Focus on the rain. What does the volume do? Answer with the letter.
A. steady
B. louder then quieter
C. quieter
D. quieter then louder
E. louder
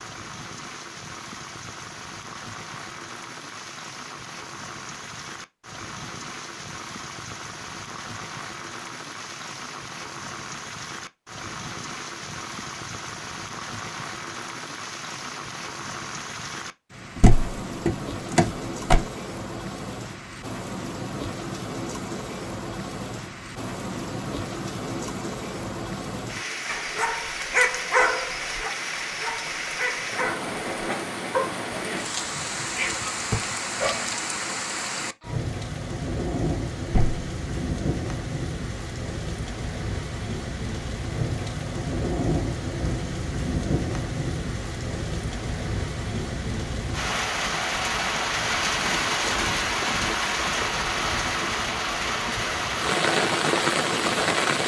E.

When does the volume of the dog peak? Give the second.
28 s.